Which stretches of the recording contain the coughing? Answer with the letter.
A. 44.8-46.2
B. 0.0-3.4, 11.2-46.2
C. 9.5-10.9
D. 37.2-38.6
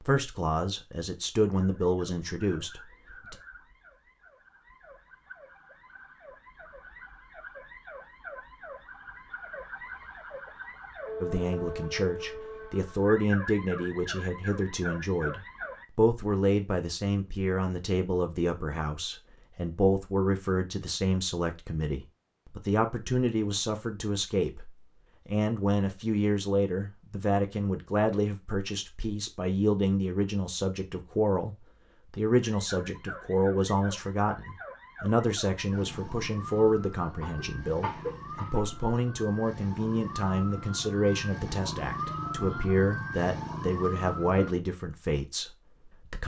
D.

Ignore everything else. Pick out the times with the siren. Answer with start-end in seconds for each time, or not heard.
1.5-15.8, 32.4-44.5.